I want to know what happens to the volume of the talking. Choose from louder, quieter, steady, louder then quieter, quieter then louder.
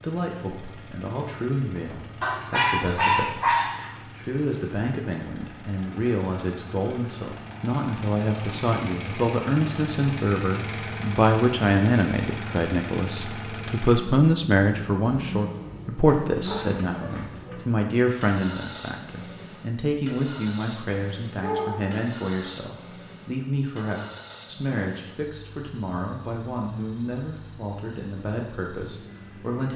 louder then quieter.